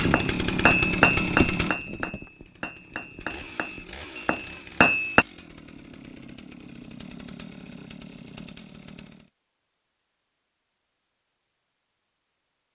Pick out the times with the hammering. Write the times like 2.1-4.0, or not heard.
0.0-5.2.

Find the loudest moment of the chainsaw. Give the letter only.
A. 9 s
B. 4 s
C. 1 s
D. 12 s
C.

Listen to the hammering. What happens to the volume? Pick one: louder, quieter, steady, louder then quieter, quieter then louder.
quieter then louder.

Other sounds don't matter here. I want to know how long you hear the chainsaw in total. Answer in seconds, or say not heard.
9 s.